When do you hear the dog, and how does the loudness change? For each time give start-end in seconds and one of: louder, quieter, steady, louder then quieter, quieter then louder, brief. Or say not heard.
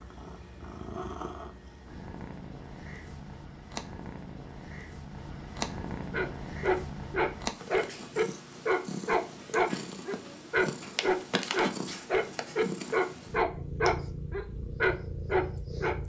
6.1-15.9 steady.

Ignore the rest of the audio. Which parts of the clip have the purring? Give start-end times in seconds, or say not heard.
0.0-16.0.